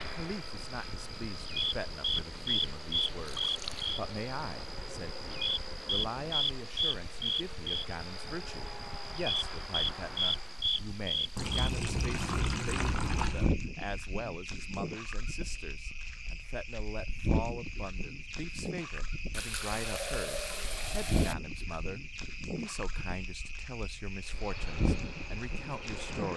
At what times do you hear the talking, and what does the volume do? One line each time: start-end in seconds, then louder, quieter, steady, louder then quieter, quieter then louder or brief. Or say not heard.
0.0-26.3 steady.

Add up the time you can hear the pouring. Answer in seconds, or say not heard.
5 s.